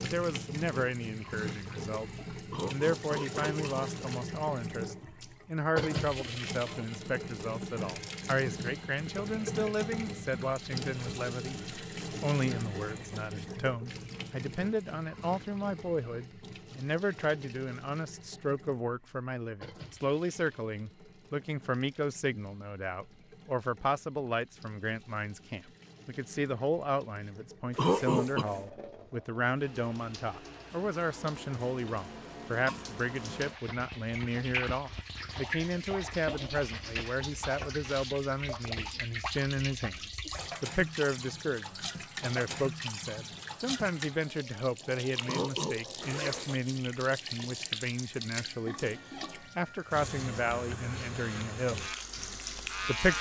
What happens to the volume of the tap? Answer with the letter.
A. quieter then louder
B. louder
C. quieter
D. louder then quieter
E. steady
A.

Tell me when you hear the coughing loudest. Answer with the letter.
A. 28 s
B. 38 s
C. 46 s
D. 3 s
A.